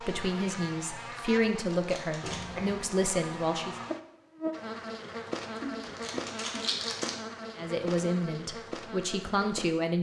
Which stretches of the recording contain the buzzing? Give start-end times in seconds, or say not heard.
0.0-9.8.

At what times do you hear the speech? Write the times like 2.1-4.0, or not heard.
0.0-3.8, 7.5-9.9.